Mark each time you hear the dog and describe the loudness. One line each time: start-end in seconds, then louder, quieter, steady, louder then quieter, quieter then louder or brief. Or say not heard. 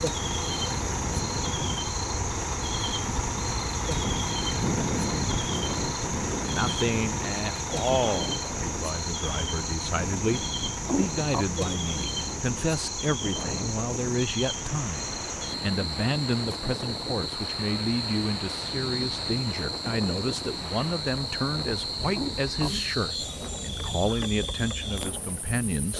not heard.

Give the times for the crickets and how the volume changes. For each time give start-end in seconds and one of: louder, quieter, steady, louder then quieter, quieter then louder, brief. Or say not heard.
0.0-25.9 steady.